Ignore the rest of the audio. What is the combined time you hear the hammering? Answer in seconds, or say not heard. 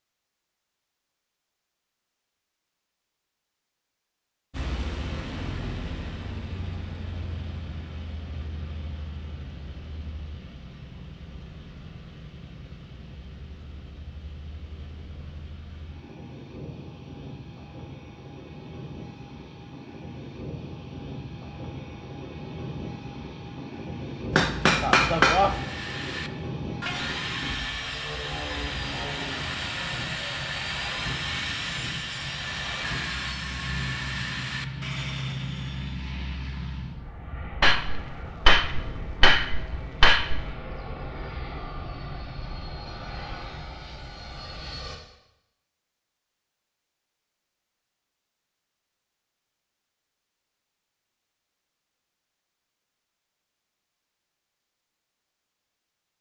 4 s.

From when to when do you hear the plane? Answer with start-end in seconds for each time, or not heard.
4.5-45.0.